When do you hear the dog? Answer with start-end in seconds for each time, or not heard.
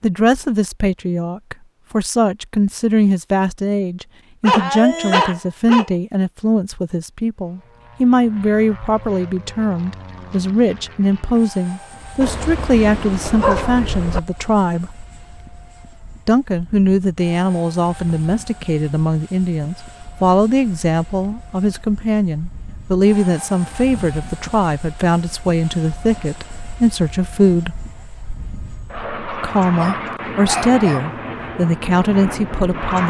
4.4-5.9, 12.2-14.2, 29.8-31.1.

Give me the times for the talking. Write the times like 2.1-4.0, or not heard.
0.0-14.9, 16.2-27.8, 29.3-33.0.